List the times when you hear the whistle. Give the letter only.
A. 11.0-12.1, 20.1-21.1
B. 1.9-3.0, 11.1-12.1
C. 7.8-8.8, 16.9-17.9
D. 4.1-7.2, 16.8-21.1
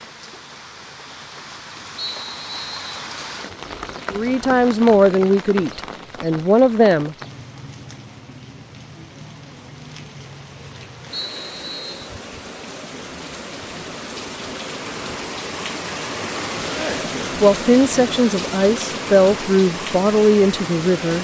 B.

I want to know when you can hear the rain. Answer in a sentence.
The rain can be heard from 0.0 to 21.1 s.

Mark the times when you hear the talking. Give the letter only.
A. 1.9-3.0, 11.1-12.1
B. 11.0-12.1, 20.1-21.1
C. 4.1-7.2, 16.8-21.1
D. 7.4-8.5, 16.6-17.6
C.